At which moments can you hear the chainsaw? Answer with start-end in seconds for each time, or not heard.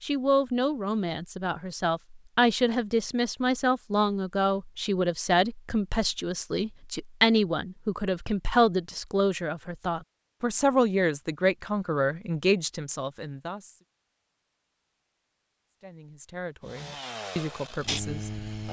16.6-18.6.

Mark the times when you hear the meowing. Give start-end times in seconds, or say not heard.
not heard.